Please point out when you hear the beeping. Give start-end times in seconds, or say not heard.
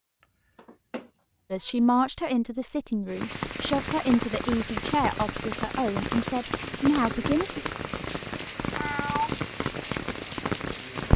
not heard.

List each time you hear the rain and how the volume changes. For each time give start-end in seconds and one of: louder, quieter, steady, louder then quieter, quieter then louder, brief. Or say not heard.
3.0-11.1 steady.